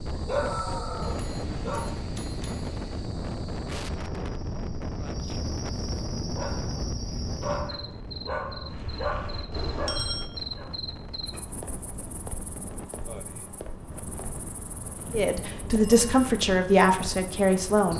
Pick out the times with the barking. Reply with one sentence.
You can hear the barking from 0.1 to 1.9 s and from 6.3 to 10.7 s.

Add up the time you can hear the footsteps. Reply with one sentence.
You can't hear the footsteps here.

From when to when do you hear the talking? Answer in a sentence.
You can hear the talking from 15.1 to 17.9 s.